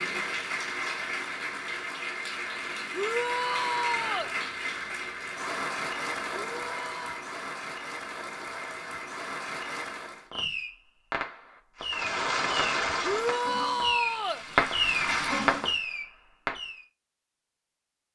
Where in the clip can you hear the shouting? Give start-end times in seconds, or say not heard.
2.9-4.3, 6.3-7.2, 13.0-14.4.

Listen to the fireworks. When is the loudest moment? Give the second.
15 s.